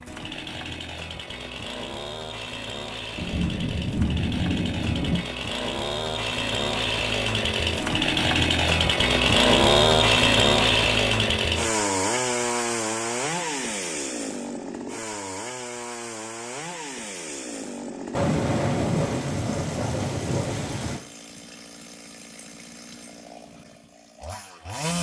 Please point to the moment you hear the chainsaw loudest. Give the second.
10 s.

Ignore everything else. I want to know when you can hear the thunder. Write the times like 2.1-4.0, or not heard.
3.1-5.2, 18.1-21.0.